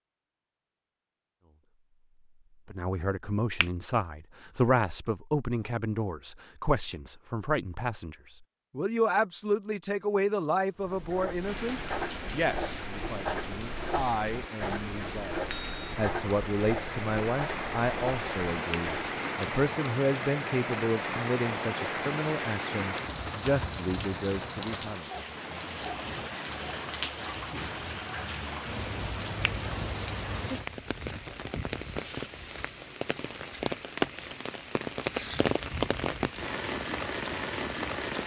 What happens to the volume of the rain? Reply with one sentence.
The loudness of the rain goes up.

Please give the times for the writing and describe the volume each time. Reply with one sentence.
You can hear the writing from 10.8 to 19.2 s, at a steady volume.